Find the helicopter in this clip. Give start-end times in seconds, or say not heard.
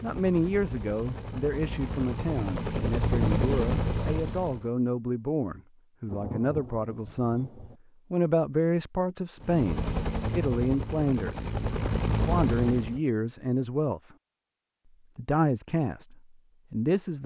0.0-4.7, 9.4-13.0.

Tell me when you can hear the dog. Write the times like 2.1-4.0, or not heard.
not heard.